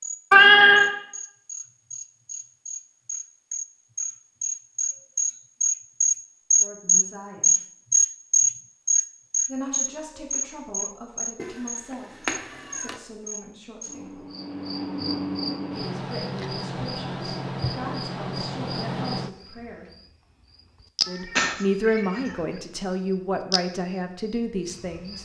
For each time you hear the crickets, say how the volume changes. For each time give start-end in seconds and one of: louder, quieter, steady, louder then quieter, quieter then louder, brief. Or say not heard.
0.0-25.2 louder then quieter.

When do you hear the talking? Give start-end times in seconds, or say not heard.
6.5-7.5, 9.4-14.2, 15.8-19.9, 21.1-25.2.